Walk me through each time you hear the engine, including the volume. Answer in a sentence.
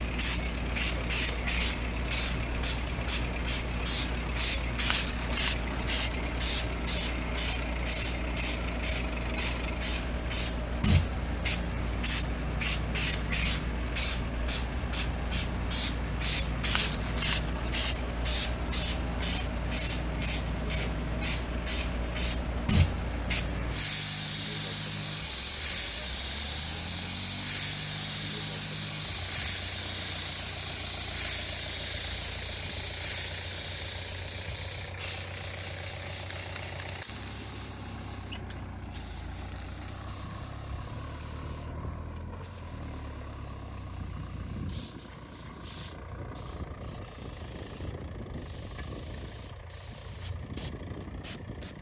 You can hear the engine from 0.0 to 51.7 s, at a steady volume.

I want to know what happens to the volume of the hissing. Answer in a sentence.
The volume of the hissing goes down.